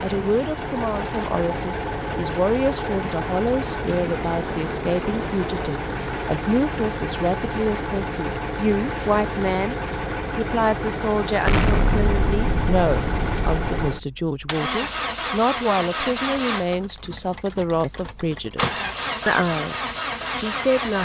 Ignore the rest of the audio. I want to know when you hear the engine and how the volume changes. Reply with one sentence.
The engine can be heard from 0.0 to 20.9 s, at a steady volume.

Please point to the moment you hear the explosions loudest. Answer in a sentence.
The loudest moment of the explosions is at 12 seconds.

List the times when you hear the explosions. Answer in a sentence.
You can hear the explosions from 11.4 to 13.8 s.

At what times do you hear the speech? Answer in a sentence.
You can hear the speech from 0.0 to 9.8 s and from 10.3 to 20.9 s.